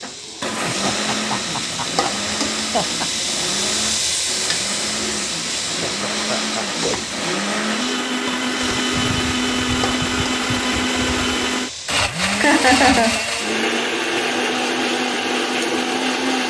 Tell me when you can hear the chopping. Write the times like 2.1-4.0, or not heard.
not heard.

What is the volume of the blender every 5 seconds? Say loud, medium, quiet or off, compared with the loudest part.
medium, loud, loud, loud.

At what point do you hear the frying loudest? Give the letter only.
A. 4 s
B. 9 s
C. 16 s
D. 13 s
A.